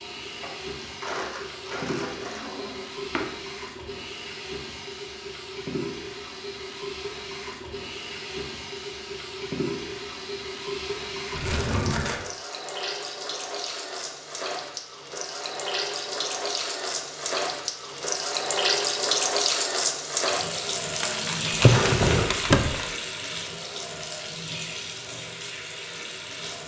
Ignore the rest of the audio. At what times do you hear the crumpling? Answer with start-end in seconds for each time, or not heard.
0.4-2.4, 11.4-12.2, 21.0-22.9.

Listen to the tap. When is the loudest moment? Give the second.
19 s.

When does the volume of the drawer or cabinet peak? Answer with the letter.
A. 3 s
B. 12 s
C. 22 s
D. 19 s
C.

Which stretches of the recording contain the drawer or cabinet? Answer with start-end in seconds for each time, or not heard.
2.1-3.3, 11.3-12.1, 21.6-22.8.